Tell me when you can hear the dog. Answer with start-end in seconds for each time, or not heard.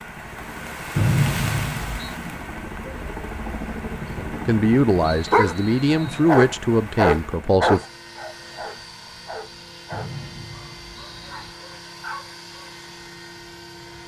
5.3-12.7.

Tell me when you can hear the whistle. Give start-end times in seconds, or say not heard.
0.9-2.1, 5.0-6.2, 9.9-11.6.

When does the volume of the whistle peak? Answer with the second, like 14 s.
1 s.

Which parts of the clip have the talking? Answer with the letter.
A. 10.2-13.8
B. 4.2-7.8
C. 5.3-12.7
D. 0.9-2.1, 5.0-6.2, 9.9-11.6
B.